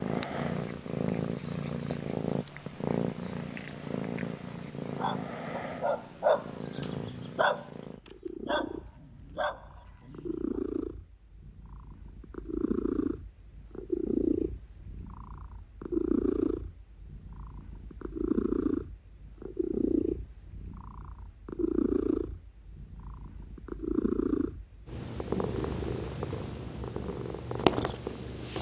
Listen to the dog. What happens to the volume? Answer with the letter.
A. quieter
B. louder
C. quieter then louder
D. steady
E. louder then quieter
E.